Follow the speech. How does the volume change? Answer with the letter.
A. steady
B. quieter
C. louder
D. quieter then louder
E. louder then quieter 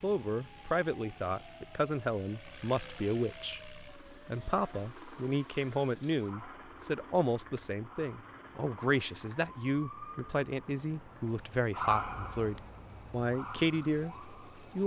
A.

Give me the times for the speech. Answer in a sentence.
The speech can be heard from 0.0 to 14.8 s.